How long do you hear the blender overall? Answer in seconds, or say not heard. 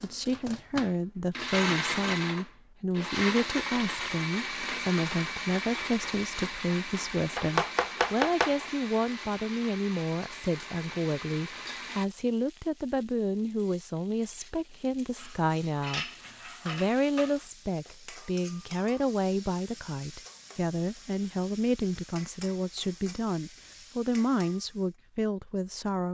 12 s.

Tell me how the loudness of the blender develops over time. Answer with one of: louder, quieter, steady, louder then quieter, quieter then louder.
quieter.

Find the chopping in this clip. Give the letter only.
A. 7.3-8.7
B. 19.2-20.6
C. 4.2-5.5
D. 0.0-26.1
A.